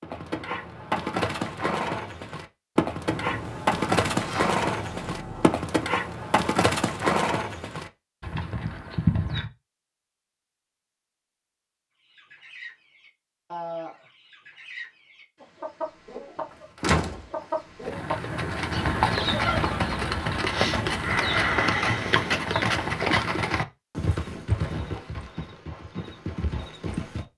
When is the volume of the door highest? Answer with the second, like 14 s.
17 s.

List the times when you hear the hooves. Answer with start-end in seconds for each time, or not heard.
0.0-9.5, 17.9-27.2.